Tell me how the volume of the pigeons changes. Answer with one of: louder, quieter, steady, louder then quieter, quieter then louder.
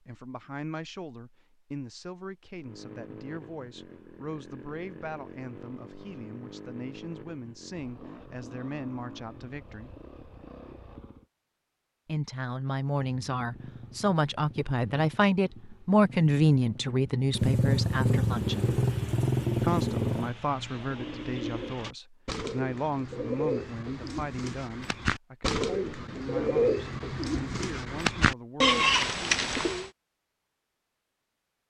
louder.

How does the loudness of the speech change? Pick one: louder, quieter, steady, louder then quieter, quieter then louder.
louder then quieter.